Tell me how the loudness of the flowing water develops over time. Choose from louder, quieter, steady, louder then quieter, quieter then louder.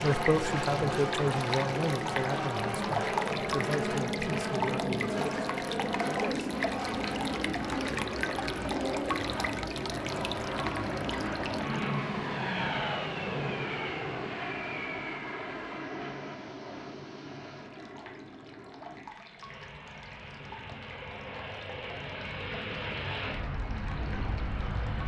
quieter.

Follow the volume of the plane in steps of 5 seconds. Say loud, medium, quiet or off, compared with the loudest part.
loud, loud, loud, medium, medium.